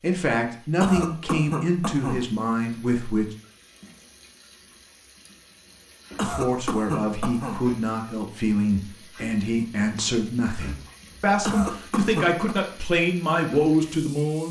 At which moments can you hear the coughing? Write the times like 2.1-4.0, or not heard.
0.8-2.2, 6.2-7.6, 11.4-12.6.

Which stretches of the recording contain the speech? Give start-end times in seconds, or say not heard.
0.0-3.2, 6.2-14.4.